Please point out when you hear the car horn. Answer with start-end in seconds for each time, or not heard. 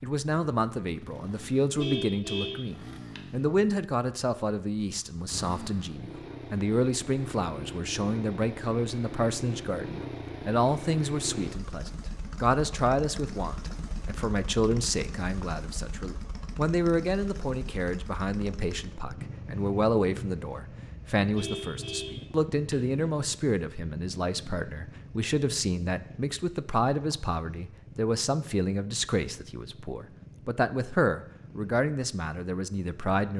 1.8-3.2, 21.3-22.8.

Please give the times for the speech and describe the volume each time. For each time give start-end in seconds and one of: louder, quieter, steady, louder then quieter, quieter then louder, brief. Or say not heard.
0.0-33.3 steady.